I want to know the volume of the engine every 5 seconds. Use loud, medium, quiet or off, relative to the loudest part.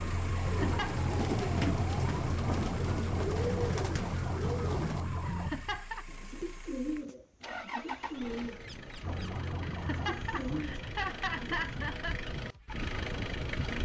medium, medium, loud.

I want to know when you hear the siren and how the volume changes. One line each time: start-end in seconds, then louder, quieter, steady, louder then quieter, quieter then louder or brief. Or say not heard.
0.0-5.5 steady
9.0-10.7 brief.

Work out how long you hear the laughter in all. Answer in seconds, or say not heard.
4 s.